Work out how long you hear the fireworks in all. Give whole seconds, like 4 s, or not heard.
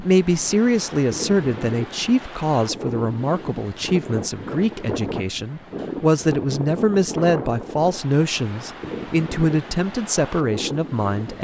not heard.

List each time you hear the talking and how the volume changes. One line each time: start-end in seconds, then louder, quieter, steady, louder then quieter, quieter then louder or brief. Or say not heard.
0.0-11.3 steady.